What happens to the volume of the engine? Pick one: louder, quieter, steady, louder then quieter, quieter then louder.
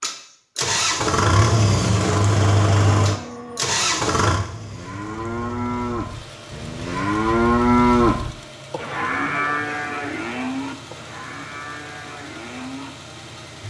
quieter.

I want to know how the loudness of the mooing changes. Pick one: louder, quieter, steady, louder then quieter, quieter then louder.
louder then quieter.